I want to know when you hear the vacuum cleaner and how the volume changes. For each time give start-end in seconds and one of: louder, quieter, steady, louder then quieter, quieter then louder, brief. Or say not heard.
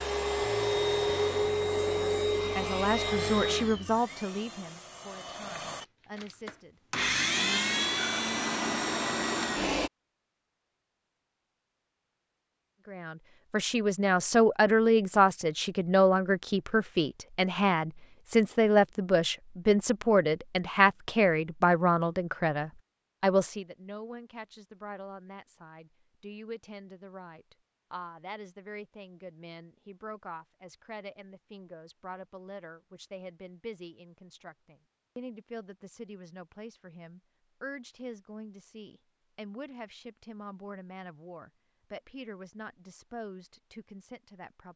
0.0-9.9 quieter then louder.